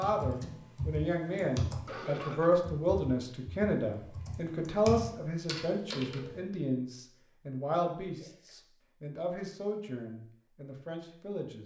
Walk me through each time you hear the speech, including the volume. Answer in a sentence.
The speech can be heard from 0.0 to 11.6 s, getting quieter.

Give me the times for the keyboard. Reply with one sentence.
You can hear the keyboard from 0.0 to 6.4 s.